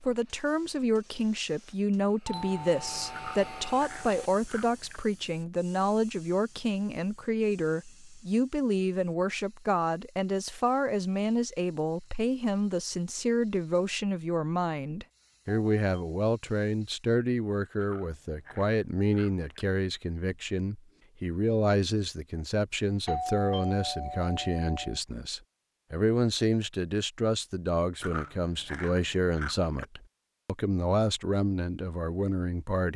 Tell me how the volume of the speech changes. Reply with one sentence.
The loudness of the speech stays about the same.